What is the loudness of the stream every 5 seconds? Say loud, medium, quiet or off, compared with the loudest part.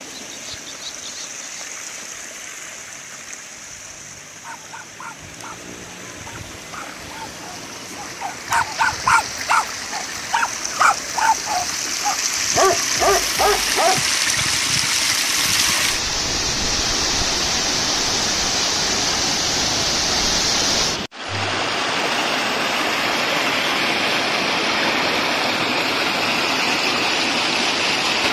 quiet, quiet, loud, loud, loud, loud.